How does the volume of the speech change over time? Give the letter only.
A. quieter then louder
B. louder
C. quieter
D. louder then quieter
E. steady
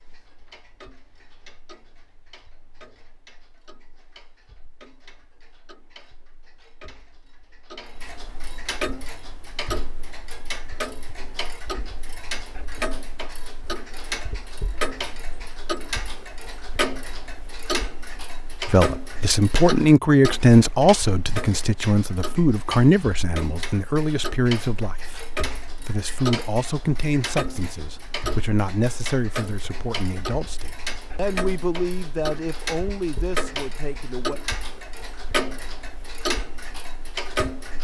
C.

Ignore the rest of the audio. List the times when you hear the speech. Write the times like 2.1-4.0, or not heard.
18.7-34.4.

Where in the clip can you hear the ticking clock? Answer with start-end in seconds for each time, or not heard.
0.0-37.8.